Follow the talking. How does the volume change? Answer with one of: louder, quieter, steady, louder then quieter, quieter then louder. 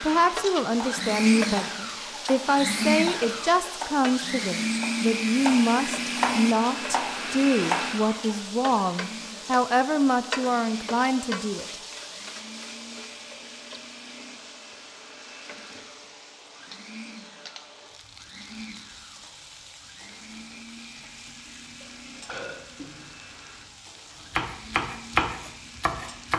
steady.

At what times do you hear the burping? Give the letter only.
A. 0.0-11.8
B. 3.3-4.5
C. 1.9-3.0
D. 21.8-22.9
D.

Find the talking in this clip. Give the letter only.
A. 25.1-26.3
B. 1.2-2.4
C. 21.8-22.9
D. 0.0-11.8
D.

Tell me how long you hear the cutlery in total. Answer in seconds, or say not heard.
not heard.